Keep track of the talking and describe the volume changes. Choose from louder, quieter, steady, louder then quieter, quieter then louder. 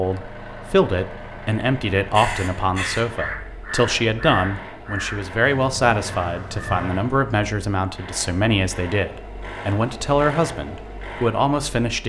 steady.